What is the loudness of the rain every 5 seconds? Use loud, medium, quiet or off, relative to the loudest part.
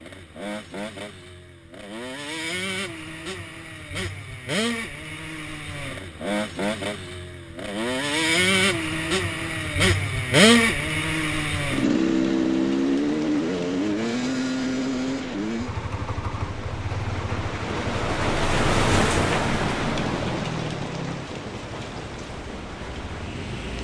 off, off, medium, loud, medium.